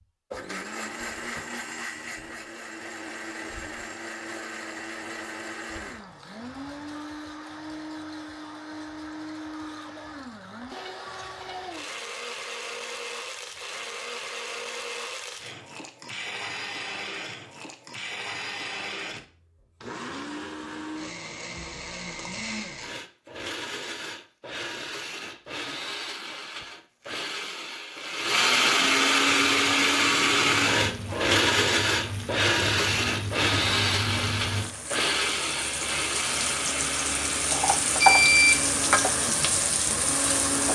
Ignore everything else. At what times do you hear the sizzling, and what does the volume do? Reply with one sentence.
You can hear the sizzling from 29.2 to 40.7 s, getting louder.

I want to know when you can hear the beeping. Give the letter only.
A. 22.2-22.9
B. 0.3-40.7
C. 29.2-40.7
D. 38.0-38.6
D.